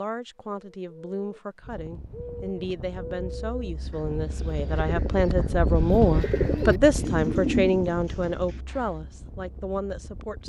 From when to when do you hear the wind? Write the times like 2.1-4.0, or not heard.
1.6-10.4.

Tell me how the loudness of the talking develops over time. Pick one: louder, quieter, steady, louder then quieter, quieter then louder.
louder then quieter.